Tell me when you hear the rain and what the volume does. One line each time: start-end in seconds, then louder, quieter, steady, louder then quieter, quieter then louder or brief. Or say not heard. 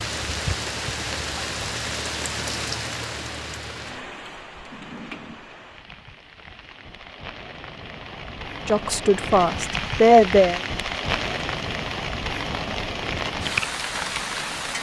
0.0-14.7 quieter then louder.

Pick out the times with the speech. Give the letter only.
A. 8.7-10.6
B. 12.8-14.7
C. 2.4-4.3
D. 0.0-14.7
A.